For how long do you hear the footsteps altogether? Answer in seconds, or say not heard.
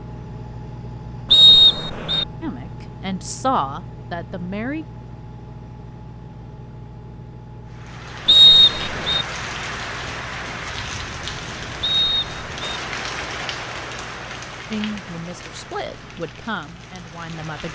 not heard.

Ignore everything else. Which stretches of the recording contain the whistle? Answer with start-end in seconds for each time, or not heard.
1.3-2.2, 8.2-9.2, 11.8-12.8.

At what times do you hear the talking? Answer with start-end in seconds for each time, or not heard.
2.4-4.8, 14.7-17.7.